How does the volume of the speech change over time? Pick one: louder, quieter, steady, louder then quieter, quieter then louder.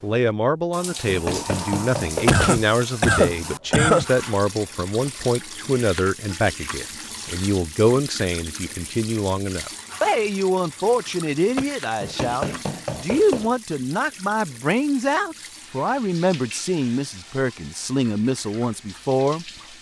steady.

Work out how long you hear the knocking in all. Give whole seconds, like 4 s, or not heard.
3 s.